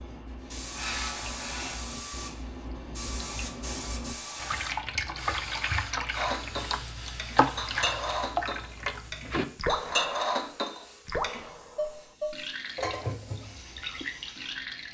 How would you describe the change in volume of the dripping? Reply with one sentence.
The volume of the dripping goes up, then down.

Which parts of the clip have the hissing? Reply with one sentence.
You can hear the hissing from 0.0 to 14.8 s.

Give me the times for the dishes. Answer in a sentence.
The dishes can be heard from 6.2 to 14.1 s.